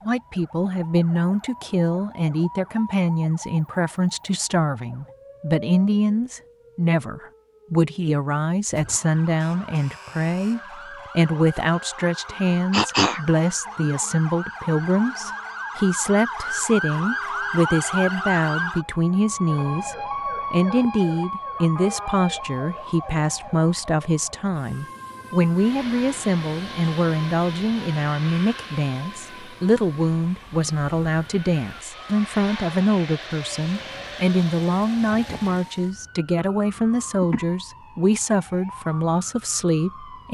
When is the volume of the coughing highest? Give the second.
13 s.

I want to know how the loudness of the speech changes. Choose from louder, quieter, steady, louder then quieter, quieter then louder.
steady.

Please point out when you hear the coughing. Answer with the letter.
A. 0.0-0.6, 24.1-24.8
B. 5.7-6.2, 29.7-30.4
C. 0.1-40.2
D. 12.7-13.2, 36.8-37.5
D.